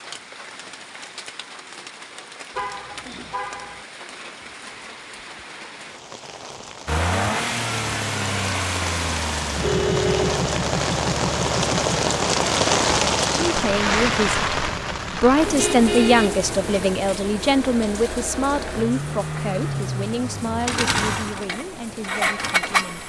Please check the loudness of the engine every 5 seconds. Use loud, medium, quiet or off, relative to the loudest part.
off, loud, loud, medium, loud.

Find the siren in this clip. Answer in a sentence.
The siren can't be heard in this clip.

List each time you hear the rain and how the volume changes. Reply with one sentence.
The rain can be heard from 0.0 to 23.0 s, getting louder then quieter.